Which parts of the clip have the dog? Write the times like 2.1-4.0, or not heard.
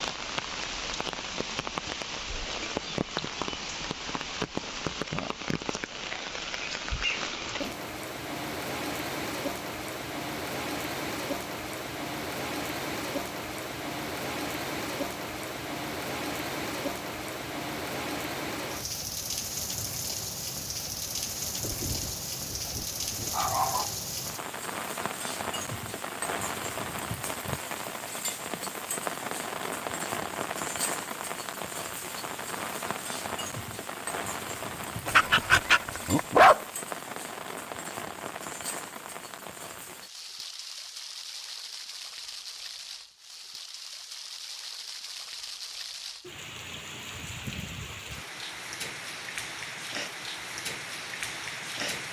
21.6-23.9, 35.0-36.6.